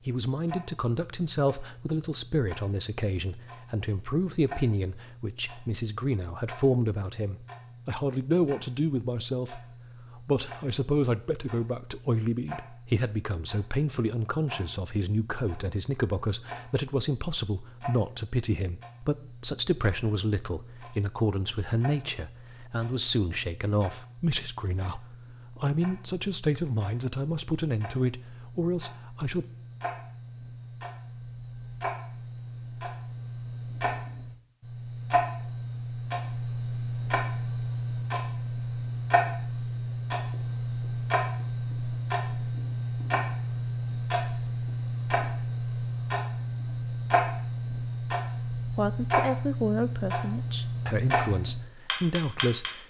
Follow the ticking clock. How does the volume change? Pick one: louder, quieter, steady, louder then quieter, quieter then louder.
louder.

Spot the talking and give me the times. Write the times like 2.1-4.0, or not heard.
0.1-9.6, 10.2-29.4, 48.8-52.8.